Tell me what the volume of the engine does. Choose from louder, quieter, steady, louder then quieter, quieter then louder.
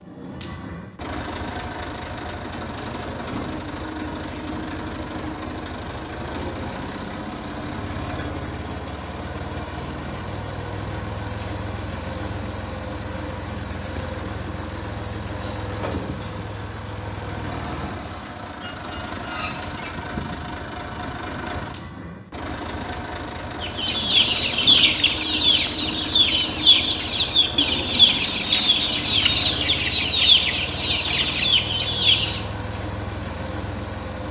steady.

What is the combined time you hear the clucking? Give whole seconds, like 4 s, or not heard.
9 s.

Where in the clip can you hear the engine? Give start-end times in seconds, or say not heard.
0.0-34.2.